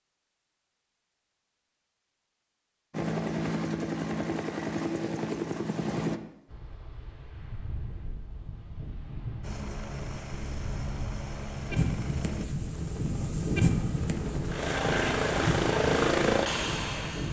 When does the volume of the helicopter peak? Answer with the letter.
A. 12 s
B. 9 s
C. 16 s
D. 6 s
C.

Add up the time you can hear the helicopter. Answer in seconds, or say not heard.
11 s.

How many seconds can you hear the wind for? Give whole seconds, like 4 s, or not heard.
11 s.